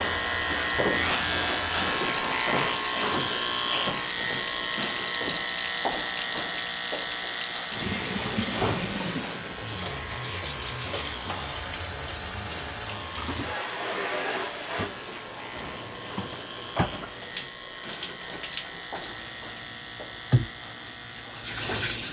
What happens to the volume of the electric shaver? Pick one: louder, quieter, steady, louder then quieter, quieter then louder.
quieter.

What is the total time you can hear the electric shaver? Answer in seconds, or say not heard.
22 s.